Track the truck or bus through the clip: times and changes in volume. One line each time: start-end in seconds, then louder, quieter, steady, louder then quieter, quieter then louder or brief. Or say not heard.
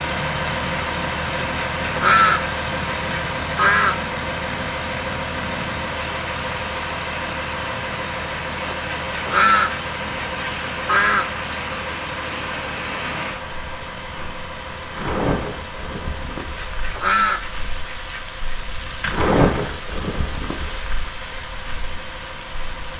0.0-22.9 quieter.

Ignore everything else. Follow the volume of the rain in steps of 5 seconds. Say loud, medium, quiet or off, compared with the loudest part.
medium, medium, medium, loud, medium.